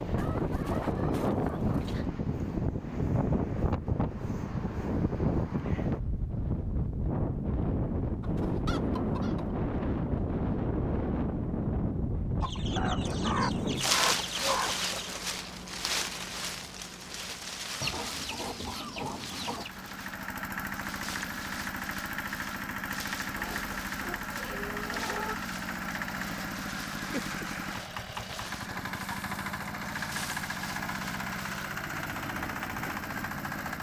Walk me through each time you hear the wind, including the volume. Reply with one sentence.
The wind can be heard from 0.0 to 33.7 s, getting quieter.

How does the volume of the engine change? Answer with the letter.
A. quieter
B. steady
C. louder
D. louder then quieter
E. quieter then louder
B.